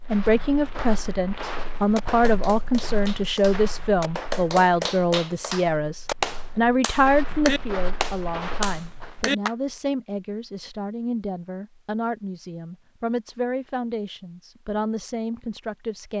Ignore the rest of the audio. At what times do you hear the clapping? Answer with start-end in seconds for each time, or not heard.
1.4-9.6.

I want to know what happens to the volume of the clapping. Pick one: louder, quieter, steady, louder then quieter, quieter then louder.
louder.